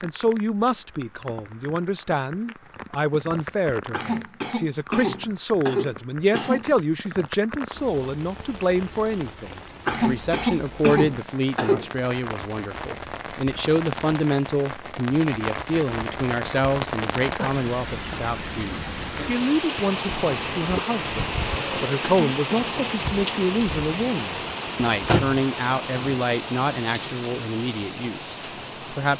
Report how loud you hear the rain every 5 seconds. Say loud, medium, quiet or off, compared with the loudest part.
quiet, quiet, medium, loud, loud, loud.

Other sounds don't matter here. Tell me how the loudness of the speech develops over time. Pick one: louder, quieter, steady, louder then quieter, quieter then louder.
steady.